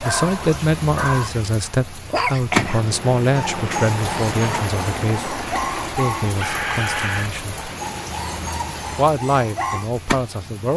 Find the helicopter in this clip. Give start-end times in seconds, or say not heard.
2.6-9.1.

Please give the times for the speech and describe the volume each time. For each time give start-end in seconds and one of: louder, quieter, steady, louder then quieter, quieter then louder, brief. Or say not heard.
0.0-7.7 quieter
8.9-10.7 brief.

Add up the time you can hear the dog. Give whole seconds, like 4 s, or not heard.
10 s.